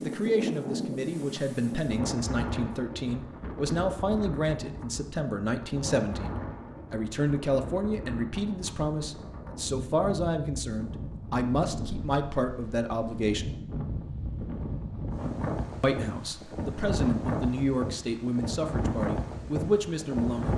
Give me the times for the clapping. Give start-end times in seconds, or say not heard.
not heard.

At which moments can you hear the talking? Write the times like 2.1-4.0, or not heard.
0.0-13.5, 15.8-20.5.